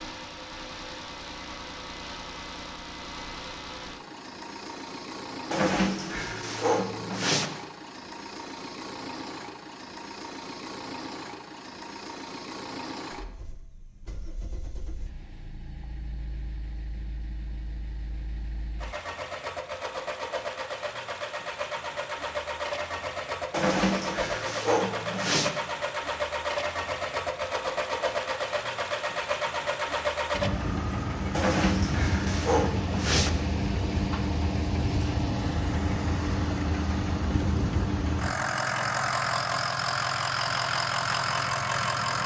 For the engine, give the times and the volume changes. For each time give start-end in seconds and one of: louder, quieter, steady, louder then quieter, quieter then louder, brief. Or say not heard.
0.0-42.2 louder.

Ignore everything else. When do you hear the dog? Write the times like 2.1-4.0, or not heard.
5.5-7.5, 23.5-25.5, 31.3-33.3.